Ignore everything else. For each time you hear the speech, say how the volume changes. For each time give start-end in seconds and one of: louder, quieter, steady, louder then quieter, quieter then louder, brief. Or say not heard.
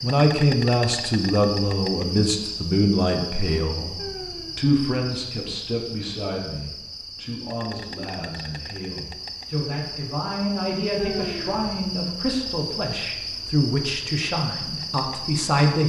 0.0-15.8 quieter then louder.